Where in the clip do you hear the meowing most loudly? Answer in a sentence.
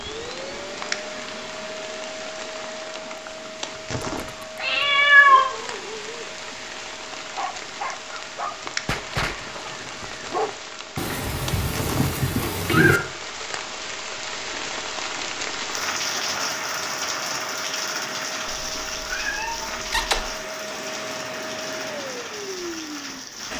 The volume of the meowing peaks at 5 seconds.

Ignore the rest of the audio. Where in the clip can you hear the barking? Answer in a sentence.
You can hear the barking from 4.4 to 6.3 s and from 7.3 to 10.6 s.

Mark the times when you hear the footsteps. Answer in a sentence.
You can't hear the footsteps here.